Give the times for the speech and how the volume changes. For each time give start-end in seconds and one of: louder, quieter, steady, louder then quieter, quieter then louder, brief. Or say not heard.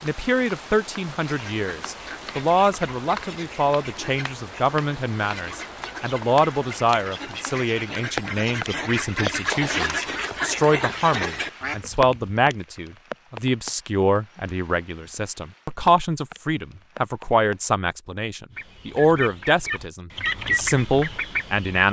0.0-21.8 steady.